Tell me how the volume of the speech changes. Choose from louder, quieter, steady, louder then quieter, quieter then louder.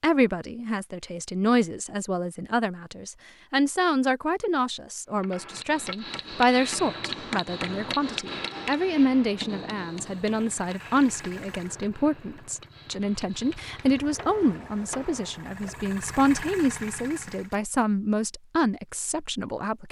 steady.